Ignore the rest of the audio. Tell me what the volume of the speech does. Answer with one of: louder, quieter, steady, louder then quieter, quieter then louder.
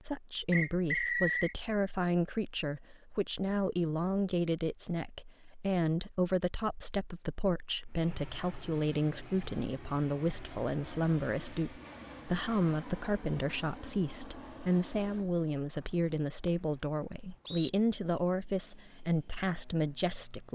steady.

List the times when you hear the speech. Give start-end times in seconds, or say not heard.
0.1-20.4.